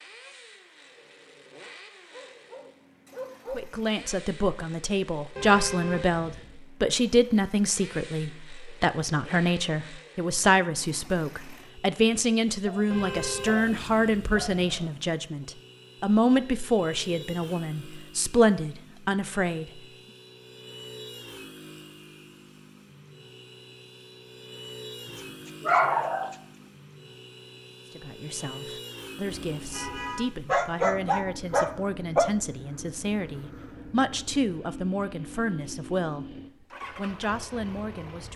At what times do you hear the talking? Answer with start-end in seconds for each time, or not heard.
3.5-19.8, 27.9-36.4, 37.0-38.3.